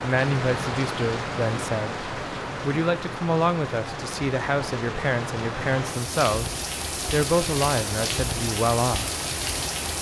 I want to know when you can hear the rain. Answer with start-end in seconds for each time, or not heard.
0.0-9.9.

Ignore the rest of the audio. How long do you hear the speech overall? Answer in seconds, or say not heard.
9 s.